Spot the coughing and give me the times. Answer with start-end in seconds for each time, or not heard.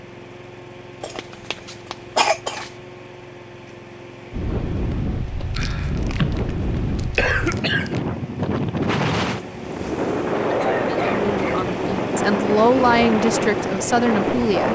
1.0-2.7, 5.5-8.0, 10.4-11.7.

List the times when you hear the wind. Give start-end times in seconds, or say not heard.
4.3-14.6.